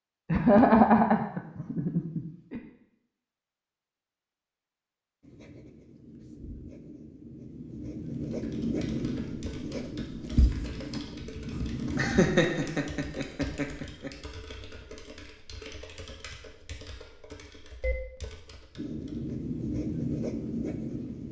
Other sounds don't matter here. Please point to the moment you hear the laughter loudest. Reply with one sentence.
The volume of the laughter peaks at 1 second.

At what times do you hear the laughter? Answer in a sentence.
The laughter can be heard from 0.3 to 2.6 s and from 11.8 to 14.1 s.